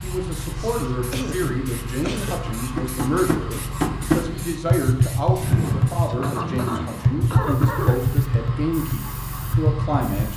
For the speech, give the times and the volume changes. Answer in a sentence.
You can hear the speech from 0.0 to 10.3 s, at a steady volume.